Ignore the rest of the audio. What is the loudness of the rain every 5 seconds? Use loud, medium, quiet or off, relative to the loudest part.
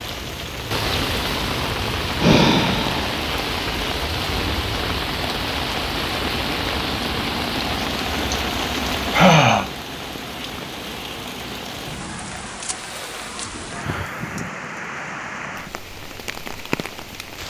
loud, loud, medium, medium.